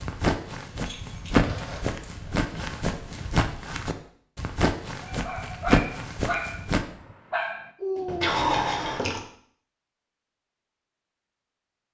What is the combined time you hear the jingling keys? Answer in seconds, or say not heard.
3 s.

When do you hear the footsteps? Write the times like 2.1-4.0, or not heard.
0.0-6.8.